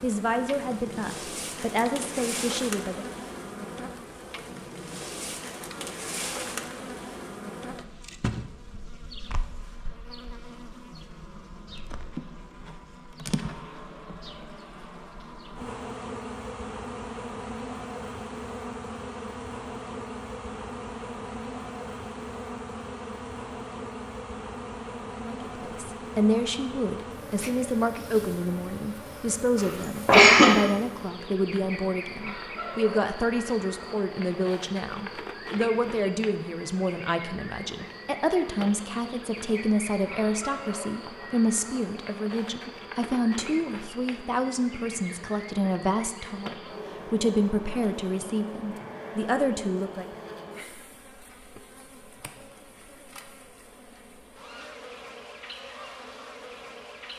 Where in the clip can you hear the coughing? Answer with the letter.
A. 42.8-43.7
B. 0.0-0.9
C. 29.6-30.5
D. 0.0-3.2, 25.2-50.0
C.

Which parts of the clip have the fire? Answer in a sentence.
The fire can't be heard in this clip.